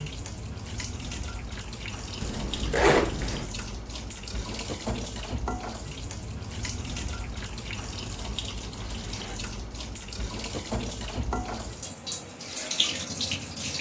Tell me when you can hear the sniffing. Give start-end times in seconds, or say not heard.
8.8-9.6.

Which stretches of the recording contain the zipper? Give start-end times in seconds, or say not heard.
2.2-3.5.